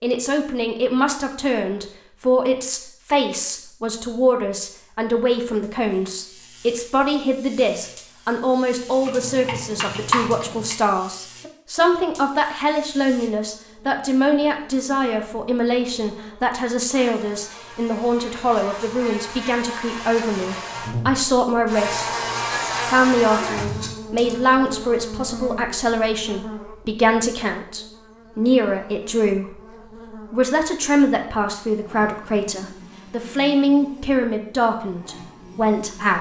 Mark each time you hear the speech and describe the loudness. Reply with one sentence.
You can hear the speech from 0.0 to 22.1 s, at a steady volume; and from 22.9 to 36.1 s, at a steady volume.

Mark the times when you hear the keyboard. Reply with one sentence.
You can hear the keyboard from 9.1 to 10.8 s and from 23.6 to 25.5 s.